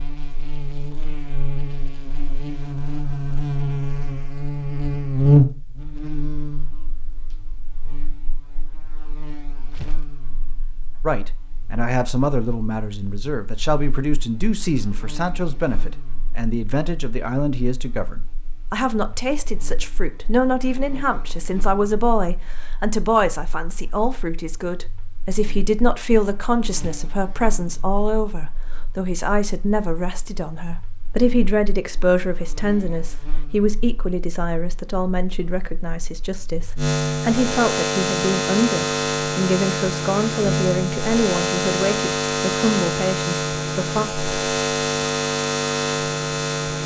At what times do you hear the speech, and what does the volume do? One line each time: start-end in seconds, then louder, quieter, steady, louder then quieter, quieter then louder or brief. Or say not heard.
11.1-44.0 steady.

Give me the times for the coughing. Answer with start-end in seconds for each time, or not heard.
not heard.